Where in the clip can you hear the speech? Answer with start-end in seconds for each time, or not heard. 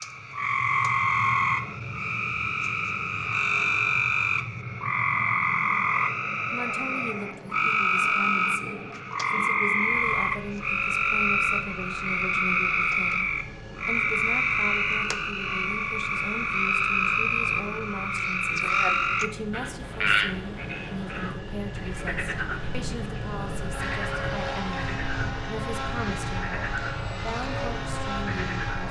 6.5-28.8.